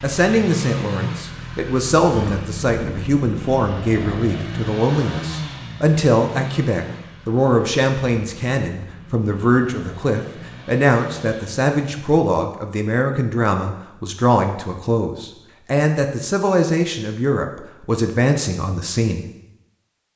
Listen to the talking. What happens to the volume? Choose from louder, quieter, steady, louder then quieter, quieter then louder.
steady.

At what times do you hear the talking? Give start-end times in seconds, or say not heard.
0.0-19.2.